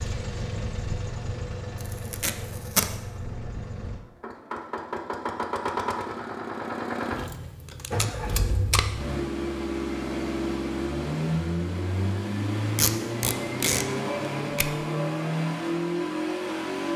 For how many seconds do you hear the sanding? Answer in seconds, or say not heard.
not heard.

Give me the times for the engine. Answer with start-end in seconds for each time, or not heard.
0.0-16.9.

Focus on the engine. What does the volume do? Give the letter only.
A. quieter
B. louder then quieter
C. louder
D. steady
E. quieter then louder
C.